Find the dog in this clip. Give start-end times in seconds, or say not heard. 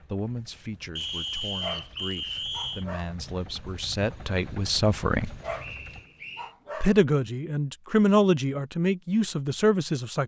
1.4-3.1, 5.2-7.0.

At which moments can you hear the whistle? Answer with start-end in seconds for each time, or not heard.
0.9-2.9, 5.5-6.5.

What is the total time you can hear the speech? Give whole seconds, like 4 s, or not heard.
9 s.